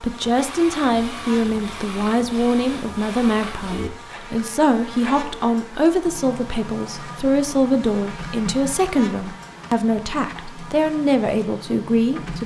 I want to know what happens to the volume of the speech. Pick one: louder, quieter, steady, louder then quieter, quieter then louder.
steady.